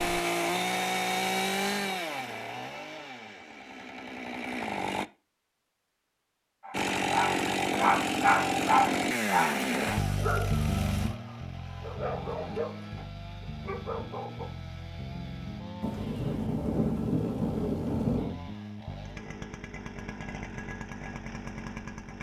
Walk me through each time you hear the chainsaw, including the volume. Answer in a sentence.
You can hear the chainsaw from 0.0 to 5.0 s, getting quieter then louder; and from 6.7 to 22.1 s, getting quieter.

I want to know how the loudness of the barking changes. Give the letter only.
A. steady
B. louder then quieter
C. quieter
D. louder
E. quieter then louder
C.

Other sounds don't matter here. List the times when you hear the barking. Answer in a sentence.
You can hear the barking from 6.6 to 14.5 s.